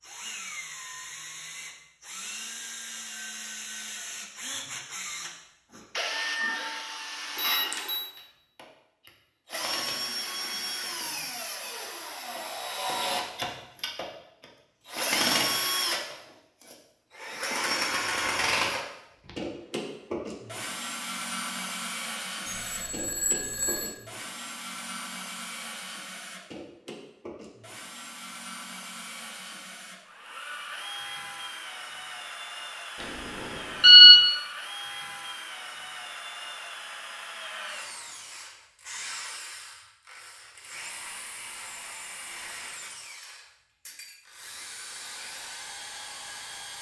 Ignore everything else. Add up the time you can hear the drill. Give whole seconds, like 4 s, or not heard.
47 s.